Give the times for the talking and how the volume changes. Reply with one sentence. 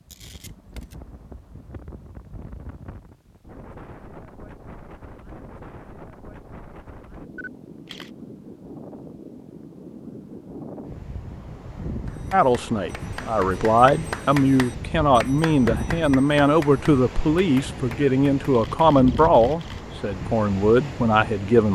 The talking can be heard from 12.3 to 21.6 s, at a steady volume.